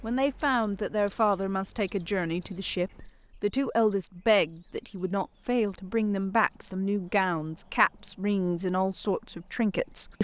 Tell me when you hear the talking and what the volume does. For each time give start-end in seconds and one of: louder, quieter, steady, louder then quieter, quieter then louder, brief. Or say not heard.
0.0-10.1 steady.